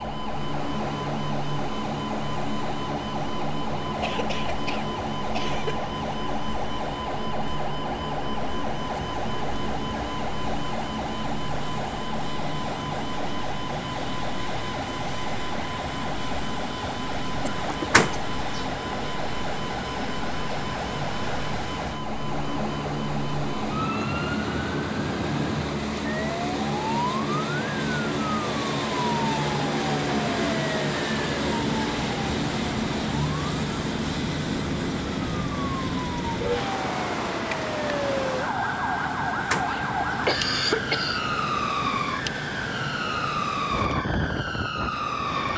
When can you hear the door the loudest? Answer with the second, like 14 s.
18 s.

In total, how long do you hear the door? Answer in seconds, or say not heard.
2 s.